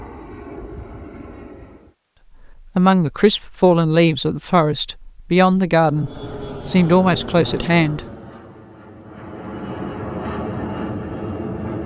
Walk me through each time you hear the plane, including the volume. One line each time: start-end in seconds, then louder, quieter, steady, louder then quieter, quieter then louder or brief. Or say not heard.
0.0-1.9 brief
5.8-11.8 quieter then louder.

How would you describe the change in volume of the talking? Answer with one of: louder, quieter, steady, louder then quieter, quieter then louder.
steady.